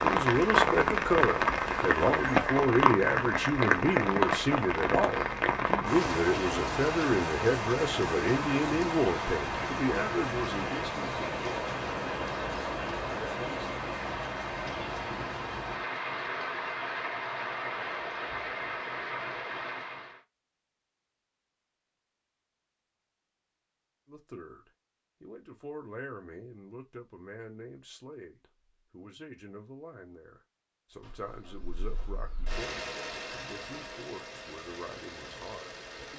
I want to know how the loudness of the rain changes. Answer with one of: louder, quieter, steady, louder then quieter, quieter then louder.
quieter.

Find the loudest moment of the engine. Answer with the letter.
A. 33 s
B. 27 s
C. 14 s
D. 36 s
A.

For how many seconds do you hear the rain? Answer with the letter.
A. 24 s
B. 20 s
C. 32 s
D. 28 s
B.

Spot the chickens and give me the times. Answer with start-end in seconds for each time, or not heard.
not heard.